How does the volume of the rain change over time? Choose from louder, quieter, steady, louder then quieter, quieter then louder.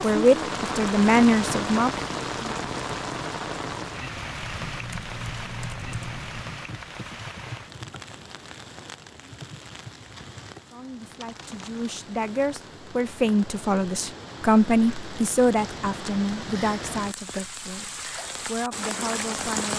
quieter then louder.